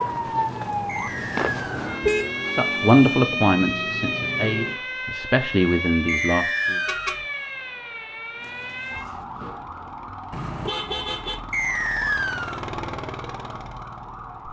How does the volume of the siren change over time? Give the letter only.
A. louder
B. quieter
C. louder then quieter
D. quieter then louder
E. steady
B.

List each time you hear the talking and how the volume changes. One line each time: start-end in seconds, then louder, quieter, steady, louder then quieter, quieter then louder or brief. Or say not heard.
2.5-6.8 quieter then louder.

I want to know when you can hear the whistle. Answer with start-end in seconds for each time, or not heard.
0.8-1.6, 6.0-7.2, 11.5-12.7.